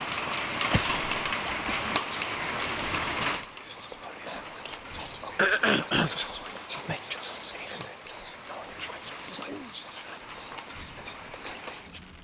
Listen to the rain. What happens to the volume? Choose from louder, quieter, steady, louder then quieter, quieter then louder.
quieter.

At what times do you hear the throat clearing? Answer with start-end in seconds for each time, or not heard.
0.7-1.9, 5.3-6.1, 9.2-9.8.